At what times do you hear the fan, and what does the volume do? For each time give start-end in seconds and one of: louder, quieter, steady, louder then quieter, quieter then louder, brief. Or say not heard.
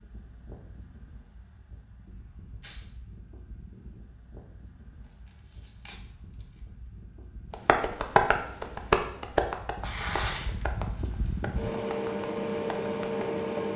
0.0-13.7 louder.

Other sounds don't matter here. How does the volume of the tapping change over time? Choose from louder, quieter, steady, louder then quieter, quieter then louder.
quieter.